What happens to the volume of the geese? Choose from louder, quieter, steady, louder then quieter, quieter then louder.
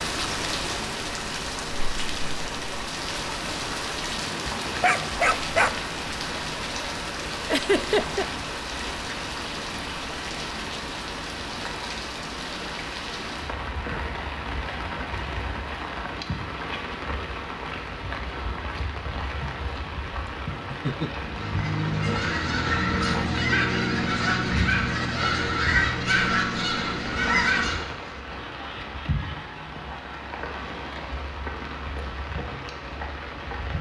quieter.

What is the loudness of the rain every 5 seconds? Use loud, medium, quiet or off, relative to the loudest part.
loud, loud, loud, loud, loud, medium, medium.